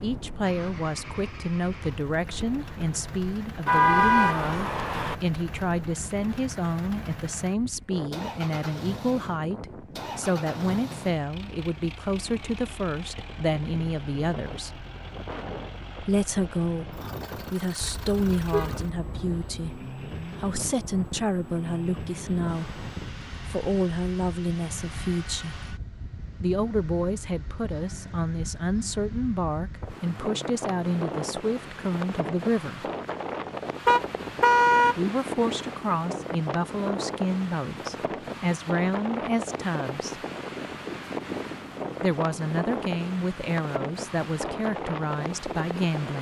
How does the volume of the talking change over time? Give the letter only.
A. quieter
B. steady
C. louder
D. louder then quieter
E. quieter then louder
B.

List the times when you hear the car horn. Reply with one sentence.
You can hear the car horn from 3.6 to 5.2 s, from 17.8 to 19.6 s and from 33.9 to 35.0 s.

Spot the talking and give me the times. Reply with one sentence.
The talking can be heard from 0.0 to 14.8 s, from 16.0 to 25.6 s, from 26.4 to 32.9 s, from 35.0 to 40.2 s and from 42.0 to 46.1 s.